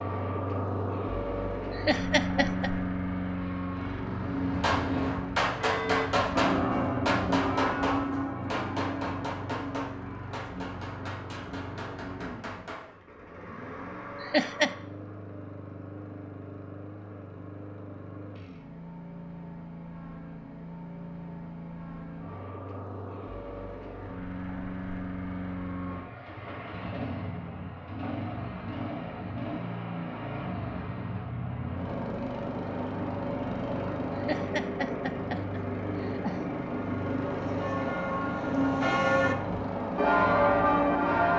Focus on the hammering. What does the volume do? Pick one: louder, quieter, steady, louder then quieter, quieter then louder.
quieter.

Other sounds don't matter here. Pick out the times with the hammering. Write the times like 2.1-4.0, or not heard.
4.5-12.9.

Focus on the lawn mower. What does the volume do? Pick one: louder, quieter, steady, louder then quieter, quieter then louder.
quieter then louder.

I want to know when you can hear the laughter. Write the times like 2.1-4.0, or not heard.
1.7-2.7, 14.2-14.7, 34.1-36.5.